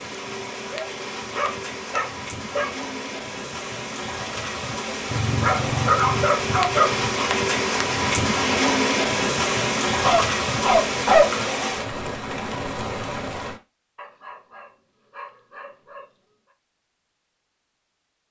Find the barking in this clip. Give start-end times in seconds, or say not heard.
0.7-2.7, 5.0-7.1, 10.0-11.3, 13.9-16.1.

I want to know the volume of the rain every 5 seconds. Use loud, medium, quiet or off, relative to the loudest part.
medium, loud, loud, off.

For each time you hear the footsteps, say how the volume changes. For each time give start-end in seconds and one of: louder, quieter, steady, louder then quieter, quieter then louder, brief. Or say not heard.
not heard.